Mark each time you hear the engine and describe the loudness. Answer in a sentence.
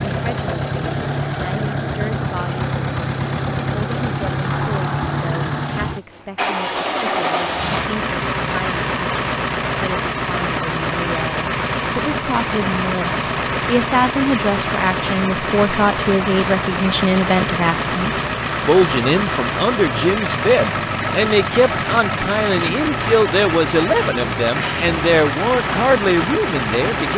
You can hear the engine from 0.0 to 27.1 s, at a steady volume.